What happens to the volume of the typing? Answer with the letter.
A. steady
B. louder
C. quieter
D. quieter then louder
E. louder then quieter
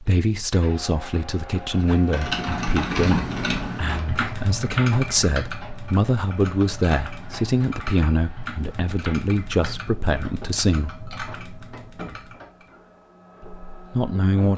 C.